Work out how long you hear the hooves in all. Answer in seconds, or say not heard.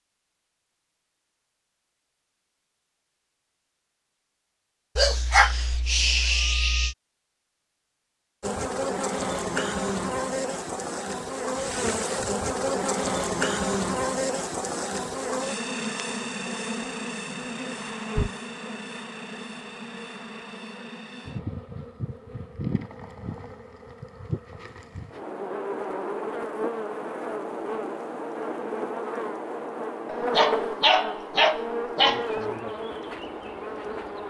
not heard.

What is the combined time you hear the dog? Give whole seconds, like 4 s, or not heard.
4 s.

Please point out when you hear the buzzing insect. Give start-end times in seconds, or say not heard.
8.4-34.2.